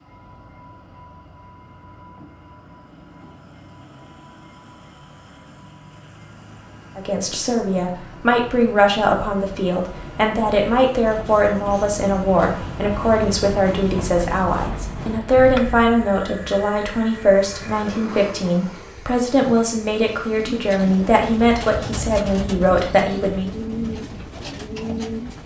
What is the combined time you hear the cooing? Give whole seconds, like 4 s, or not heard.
5 s.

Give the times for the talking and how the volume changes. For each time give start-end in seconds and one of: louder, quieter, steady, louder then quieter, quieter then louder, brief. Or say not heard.
7.0-23.5 steady.